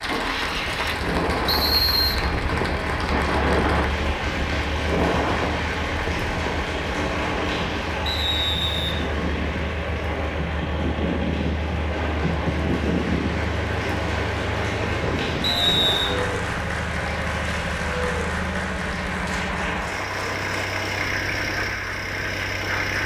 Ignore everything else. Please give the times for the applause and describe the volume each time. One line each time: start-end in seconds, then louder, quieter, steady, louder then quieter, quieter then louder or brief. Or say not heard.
0.0-23.0 quieter then louder.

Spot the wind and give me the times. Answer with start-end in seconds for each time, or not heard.
0.0-16.2.